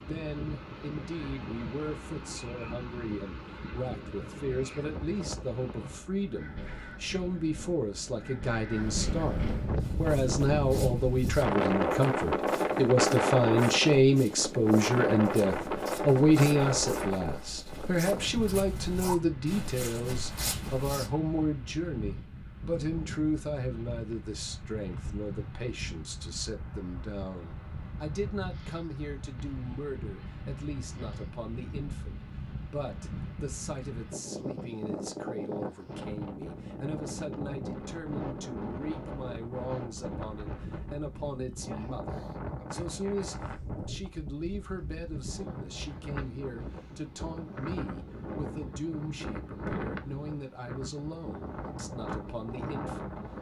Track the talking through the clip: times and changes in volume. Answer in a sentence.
You can hear the talking from 0.1 to 53.2 s, getting louder then quieter.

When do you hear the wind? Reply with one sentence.
You can hear the wind from 0.0 to 53.3 s.